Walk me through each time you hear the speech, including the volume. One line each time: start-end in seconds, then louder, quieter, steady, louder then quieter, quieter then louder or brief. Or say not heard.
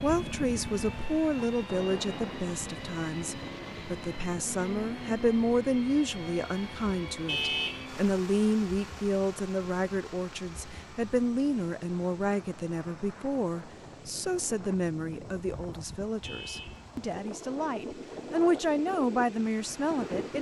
0.0-20.3 steady.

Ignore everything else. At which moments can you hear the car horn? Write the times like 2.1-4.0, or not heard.
7.2-7.8, 16.2-16.9.